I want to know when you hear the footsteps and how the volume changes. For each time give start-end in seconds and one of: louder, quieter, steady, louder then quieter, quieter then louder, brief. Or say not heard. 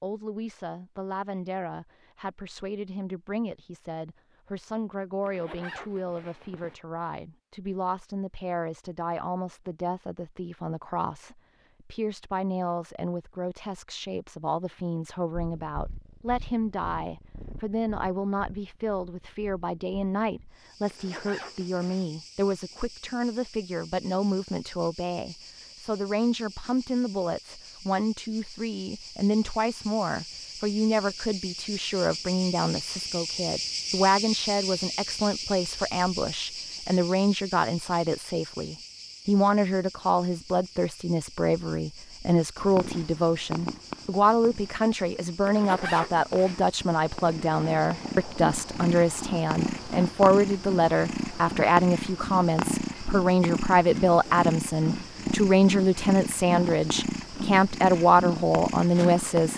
not heard.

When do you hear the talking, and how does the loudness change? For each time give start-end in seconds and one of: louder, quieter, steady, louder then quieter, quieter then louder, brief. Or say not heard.
0.0-59.5 louder.